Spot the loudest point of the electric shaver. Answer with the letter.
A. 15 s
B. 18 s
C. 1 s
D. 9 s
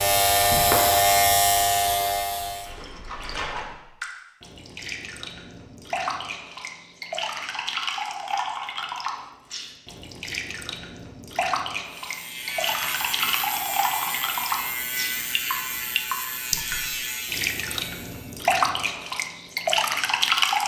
C.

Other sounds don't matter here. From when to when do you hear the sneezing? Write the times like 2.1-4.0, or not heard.
not heard.